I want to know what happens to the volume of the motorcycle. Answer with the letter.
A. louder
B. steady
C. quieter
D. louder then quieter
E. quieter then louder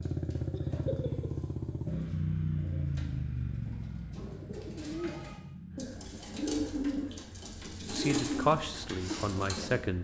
C.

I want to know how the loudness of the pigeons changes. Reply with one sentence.
The volume of the pigeons goes up.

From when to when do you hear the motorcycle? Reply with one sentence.
You can hear the motorcycle from 0.0 to 9.9 s.